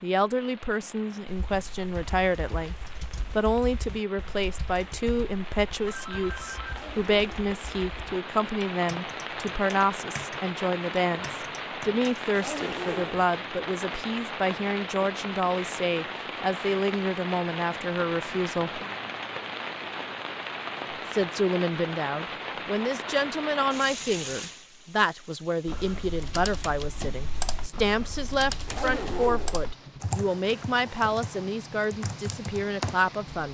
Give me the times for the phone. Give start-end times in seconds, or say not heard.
5.8-6.8.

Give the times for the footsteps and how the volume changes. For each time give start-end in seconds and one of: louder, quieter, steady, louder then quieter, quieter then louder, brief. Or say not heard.
not heard.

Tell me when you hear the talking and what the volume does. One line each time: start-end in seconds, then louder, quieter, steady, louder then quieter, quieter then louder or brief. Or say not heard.
0.0-18.8 steady
21.1-33.4 steady.